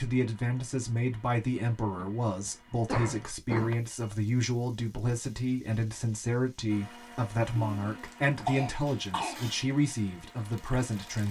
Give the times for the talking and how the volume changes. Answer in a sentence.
The talking can be heard from 0.0 to 11.2 s, at a steady volume.